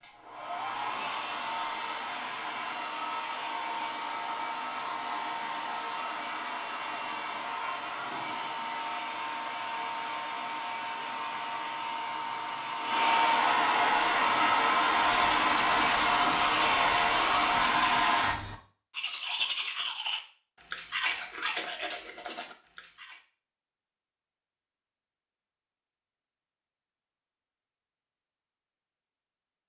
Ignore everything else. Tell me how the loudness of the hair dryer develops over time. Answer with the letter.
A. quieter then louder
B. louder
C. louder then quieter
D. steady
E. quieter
B.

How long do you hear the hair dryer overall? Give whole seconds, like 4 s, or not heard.
18 s.